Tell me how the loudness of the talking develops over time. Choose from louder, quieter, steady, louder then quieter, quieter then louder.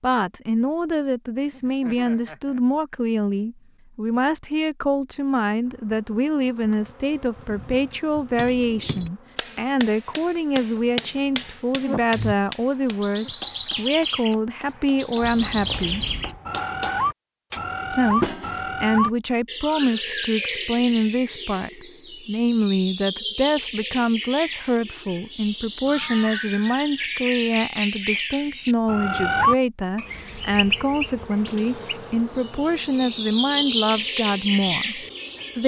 steady.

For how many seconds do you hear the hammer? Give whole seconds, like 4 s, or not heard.
10 s.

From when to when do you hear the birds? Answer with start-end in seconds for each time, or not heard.
12.1-35.6.